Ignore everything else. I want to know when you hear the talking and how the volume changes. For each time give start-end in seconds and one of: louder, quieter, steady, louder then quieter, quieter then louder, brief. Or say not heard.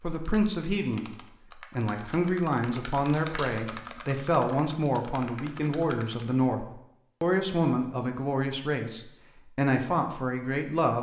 0.0-10.9 steady.